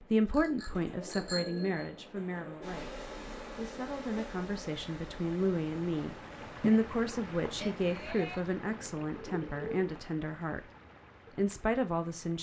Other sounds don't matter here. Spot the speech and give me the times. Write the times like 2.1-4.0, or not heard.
0.0-10.6, 11.3-12.3.